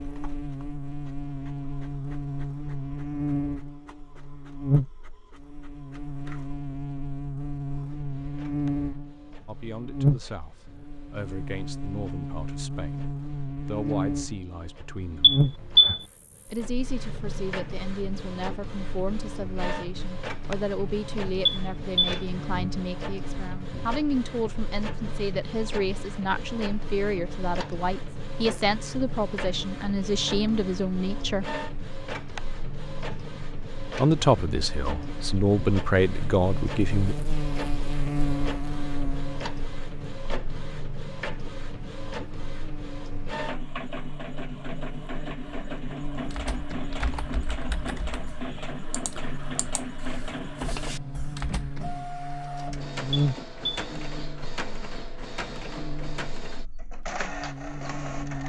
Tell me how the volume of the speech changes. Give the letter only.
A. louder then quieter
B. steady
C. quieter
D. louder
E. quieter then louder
D.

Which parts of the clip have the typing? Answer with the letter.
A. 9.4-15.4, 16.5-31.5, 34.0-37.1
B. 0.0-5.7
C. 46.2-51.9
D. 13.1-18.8
C.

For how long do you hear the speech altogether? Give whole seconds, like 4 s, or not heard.
24 s.